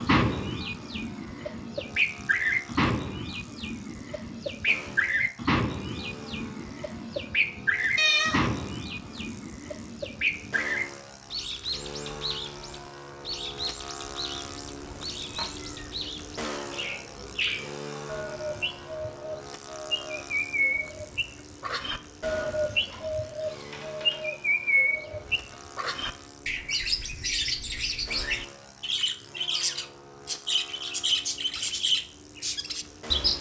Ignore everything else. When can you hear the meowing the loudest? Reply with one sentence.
The loudest moment of the meowing is at 8 seconds.